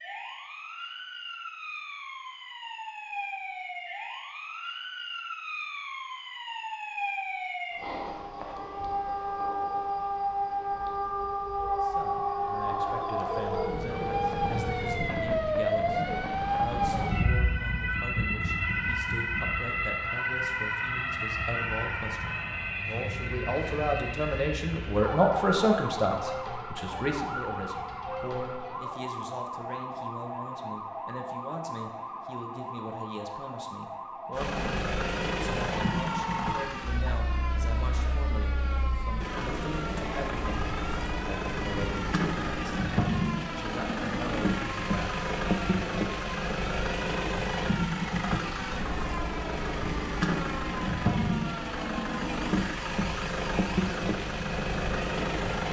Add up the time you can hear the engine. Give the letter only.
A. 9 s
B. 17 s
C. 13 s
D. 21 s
D.